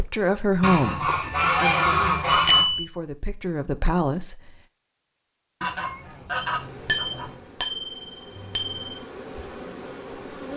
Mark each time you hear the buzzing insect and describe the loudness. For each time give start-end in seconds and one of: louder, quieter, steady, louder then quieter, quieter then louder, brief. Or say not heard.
6.5-10.5 louder.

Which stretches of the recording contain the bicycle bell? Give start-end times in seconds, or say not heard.
2.2-2.9, 6.4-9.0.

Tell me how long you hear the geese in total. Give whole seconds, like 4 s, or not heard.
4 s.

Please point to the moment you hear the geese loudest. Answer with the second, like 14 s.
2 s.